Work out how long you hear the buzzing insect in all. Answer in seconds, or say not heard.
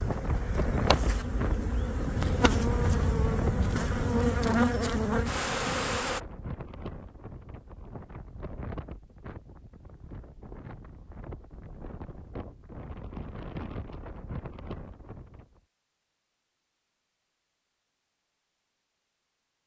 6 s.